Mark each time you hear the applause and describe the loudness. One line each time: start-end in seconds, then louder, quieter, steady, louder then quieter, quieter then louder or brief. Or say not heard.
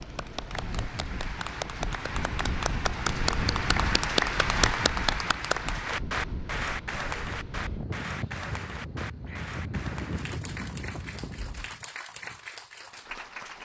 0.0-13.5 louder then quieter.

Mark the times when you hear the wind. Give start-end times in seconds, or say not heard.
0.0-11.8.